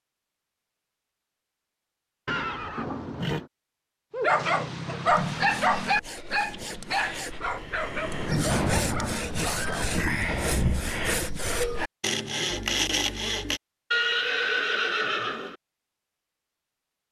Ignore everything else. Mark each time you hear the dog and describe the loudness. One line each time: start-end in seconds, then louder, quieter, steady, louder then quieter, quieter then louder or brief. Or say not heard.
4.1-9.9 quieter.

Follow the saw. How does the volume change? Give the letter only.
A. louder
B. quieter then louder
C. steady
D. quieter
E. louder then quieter
A.